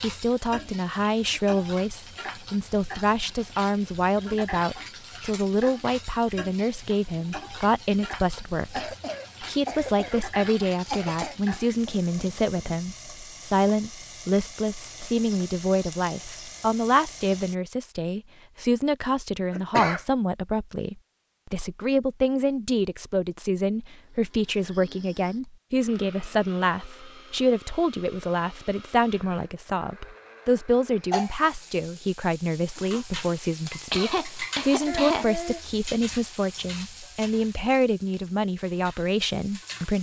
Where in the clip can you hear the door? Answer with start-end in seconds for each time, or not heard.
not heard.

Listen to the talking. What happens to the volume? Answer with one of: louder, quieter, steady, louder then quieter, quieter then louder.
steady.